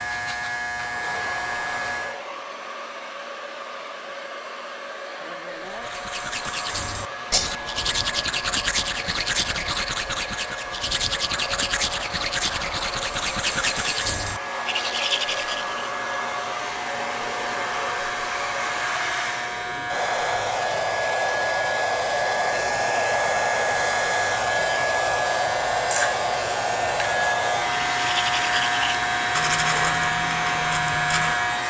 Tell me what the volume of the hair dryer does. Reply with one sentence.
The volume of the hair dryer goes up.